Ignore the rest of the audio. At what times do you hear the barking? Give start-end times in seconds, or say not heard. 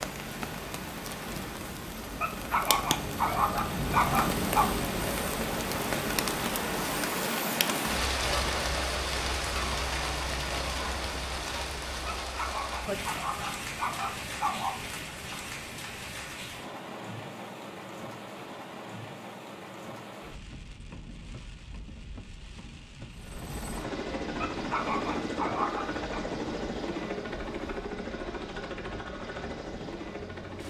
2.2-4.7, 12.1-14.8, 24.4-26.1.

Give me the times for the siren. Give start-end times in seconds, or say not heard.
not heard.